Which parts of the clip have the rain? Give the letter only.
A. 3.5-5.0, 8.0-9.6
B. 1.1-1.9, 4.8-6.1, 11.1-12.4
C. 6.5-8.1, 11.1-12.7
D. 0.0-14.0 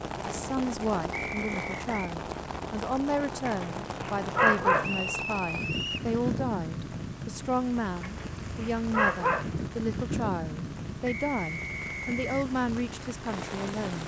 D.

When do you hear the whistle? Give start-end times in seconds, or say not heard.
1.1-1.9, 4.8-6.1, 11.1-12.4.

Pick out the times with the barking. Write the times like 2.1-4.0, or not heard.
3.5-5.0, 8.0-9.6.